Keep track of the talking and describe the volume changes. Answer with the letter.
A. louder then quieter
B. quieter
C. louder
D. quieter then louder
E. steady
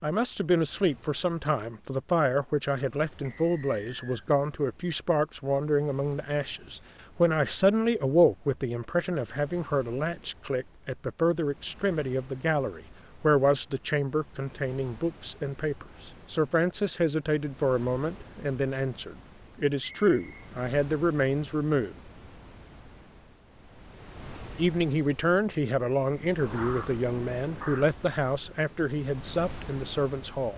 E.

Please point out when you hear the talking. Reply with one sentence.
The talking can be heard from 0.0 to 22.0 s and from 24.6 to 30.5 s.